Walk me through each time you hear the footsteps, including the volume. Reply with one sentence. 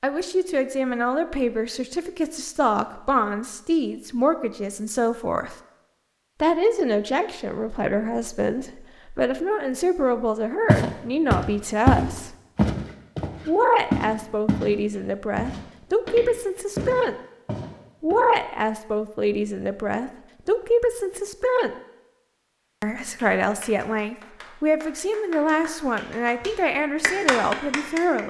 The footsteps can be heard from 10.7 to 14.7 s, getting quieter then louder; and briefly from 15.3 to 18.1 s.